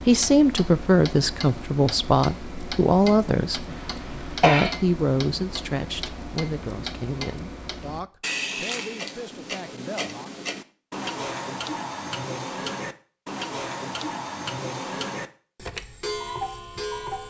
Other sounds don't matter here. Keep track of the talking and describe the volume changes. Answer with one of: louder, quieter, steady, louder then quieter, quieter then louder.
quieter.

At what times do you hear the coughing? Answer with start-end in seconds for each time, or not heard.
3.6-4.7.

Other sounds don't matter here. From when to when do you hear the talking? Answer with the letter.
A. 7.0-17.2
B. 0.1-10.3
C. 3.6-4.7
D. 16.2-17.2
B.